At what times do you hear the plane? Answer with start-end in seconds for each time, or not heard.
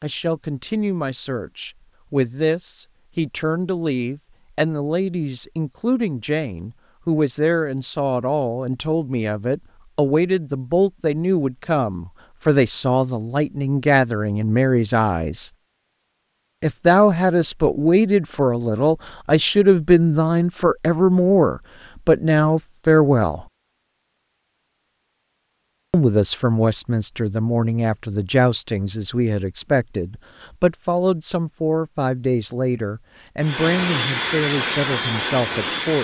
33.4-35.9.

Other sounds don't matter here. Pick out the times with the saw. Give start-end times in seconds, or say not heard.
not heard.